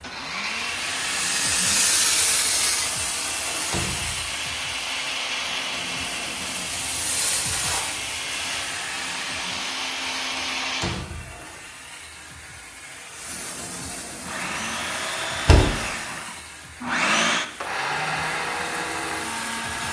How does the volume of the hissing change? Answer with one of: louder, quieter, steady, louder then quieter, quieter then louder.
quieter.